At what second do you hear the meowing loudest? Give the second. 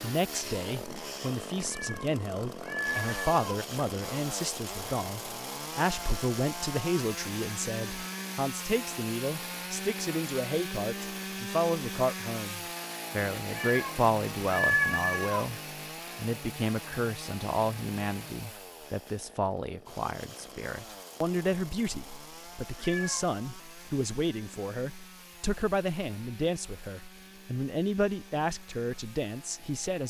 15 s.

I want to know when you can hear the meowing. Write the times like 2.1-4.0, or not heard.
1.6-3.6, 13.5-15.4, 22.8-23.4.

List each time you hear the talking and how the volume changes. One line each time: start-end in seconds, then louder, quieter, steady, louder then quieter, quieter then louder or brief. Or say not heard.
0.0-30.0 steady.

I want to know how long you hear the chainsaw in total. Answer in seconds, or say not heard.
30 s.